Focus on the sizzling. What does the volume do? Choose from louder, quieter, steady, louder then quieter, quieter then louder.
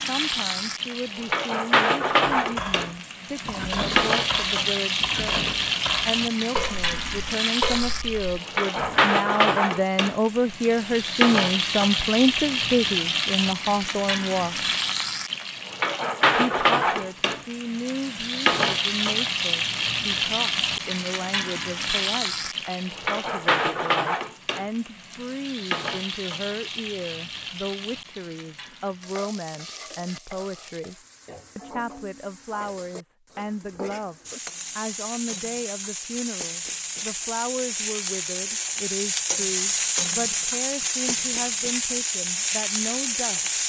quieter then louder.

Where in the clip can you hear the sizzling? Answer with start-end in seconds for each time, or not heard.
0.0-43.6.